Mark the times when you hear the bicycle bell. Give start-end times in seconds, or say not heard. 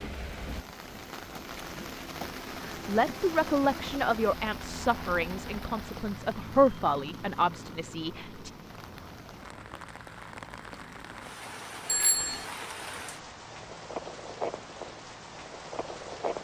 11.8-12.4.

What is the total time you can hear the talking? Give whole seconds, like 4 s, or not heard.
6 s.